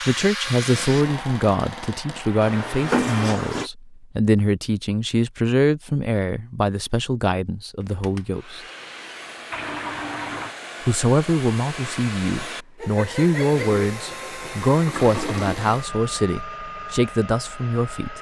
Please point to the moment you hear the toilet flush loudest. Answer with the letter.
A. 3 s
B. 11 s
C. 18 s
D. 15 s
A.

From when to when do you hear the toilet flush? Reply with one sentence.
The toilet flush can be heard from 2.4 to 3.7 s, from 9.5 to 10.6 s and from 13.5 to 15.6 s.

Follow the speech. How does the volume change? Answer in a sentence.
The loudness of the speech stays about the same.